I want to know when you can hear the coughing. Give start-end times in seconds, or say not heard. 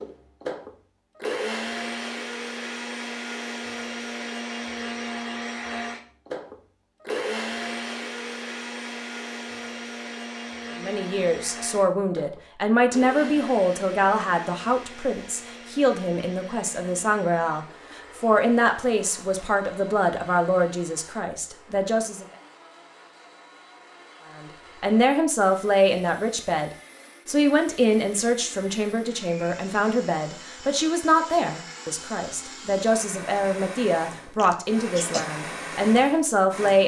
34.4-35.2.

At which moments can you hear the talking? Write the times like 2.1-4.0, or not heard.
10.8-22.2, 24.3-36.8.